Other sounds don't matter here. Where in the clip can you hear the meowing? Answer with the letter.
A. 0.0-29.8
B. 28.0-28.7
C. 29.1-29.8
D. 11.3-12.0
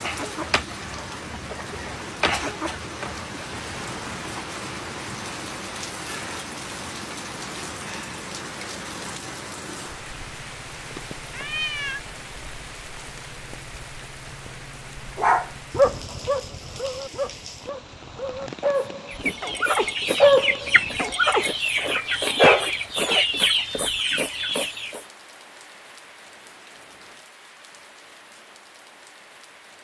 D.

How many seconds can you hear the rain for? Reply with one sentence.
You can hear the rain for 30 seconds altogether.